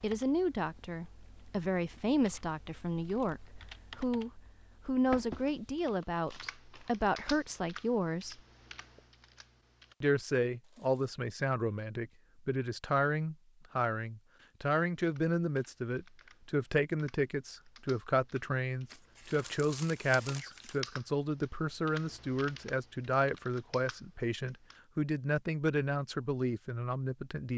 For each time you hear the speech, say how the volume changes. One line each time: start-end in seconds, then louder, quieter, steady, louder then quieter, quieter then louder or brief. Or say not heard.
0.0-8.4 steady
10.0-27.5 steady.